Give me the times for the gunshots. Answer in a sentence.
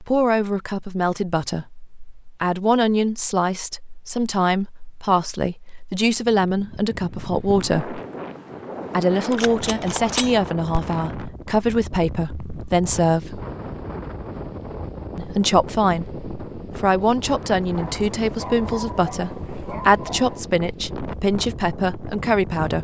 You can hear the gunshots from 9.3 to 10.9 s.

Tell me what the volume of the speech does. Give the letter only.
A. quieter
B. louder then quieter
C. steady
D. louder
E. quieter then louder
C.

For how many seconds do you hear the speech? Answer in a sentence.
The speech can be heard for 20 seconds in total.